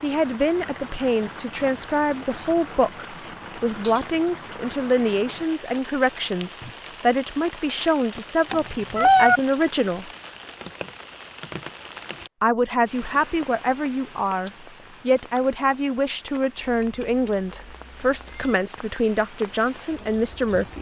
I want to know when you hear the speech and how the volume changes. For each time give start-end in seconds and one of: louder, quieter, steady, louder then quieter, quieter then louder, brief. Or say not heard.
0.0-10.1 steady
12.4-20.7 steady.